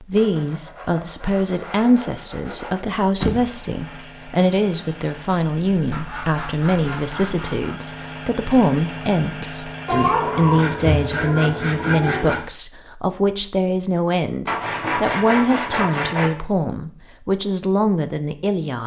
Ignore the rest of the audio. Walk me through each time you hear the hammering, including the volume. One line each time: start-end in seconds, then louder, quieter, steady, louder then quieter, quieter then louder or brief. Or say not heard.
not heard.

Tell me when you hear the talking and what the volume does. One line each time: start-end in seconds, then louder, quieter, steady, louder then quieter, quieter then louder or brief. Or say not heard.
0.0-18.8 steady.